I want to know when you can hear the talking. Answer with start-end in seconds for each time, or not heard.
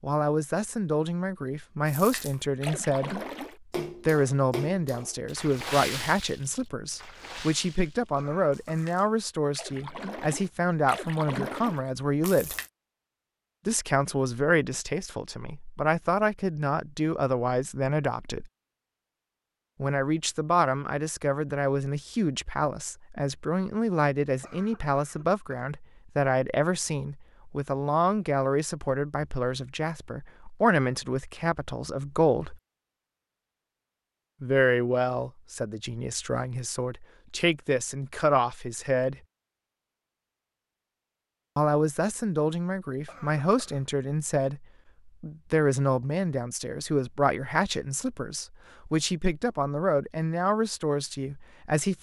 0.0-12.6, 13.7-18.5, 19.8-32.5, 34.4-39.1, 41.5-51.9.